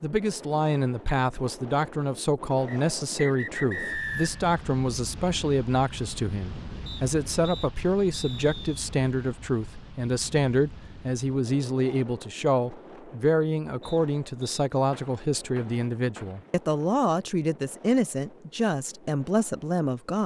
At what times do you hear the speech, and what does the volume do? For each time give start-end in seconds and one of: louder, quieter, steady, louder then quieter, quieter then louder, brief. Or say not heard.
0.0-20.2 steady.